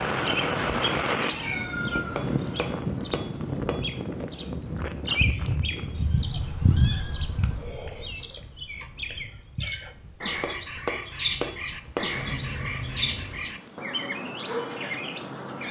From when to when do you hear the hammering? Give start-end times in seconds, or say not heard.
2.1-4.0, 10.4-12.2.